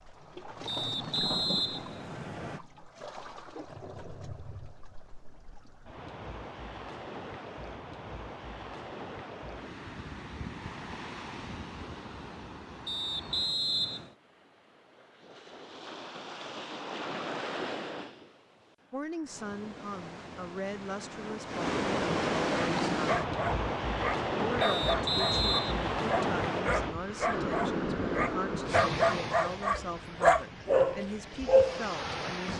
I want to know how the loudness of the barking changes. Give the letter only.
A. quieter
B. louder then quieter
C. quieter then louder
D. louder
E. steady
D.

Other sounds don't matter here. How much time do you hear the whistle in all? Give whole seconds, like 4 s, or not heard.
5 s.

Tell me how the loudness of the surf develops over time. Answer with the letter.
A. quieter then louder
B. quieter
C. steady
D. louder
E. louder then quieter
D.